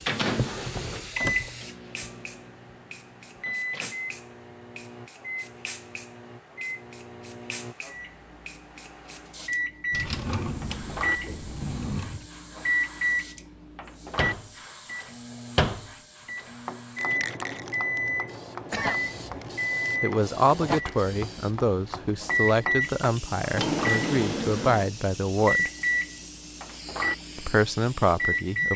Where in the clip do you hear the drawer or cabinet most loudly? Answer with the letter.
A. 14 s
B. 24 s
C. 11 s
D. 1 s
B.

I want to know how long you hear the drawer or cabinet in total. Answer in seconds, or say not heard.
5 s.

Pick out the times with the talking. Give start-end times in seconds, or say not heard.
20.0-25.7, 27.4-28.7.